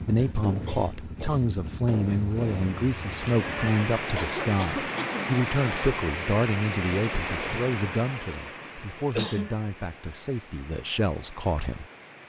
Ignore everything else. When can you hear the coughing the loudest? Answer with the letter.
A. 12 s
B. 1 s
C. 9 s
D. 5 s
C.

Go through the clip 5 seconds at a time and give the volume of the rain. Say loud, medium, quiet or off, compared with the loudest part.
loud, loud, quiet.